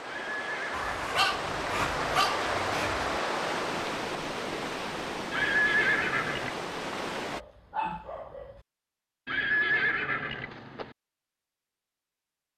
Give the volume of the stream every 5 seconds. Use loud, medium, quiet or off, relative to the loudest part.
loud, loud, off.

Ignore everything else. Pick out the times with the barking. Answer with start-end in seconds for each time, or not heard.
0.7-3.2, 7.3-8.6.